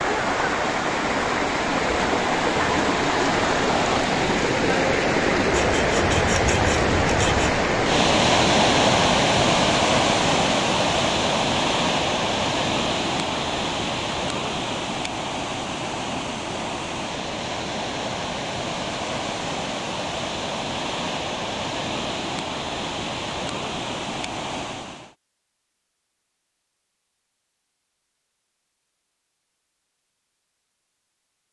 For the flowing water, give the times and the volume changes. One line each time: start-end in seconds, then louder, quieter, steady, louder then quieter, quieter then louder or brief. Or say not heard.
0.0-25.1 quieter.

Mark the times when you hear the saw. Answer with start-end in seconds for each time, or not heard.
5.5-7.5.